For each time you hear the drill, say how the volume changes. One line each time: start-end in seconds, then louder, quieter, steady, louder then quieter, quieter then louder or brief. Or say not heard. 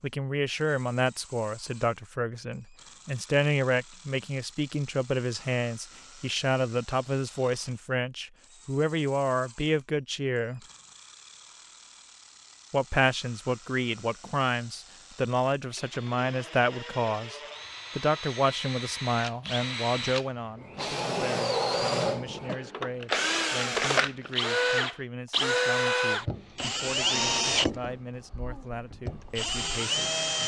0.0-30.4 louder.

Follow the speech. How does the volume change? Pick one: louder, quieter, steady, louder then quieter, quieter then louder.
quieter.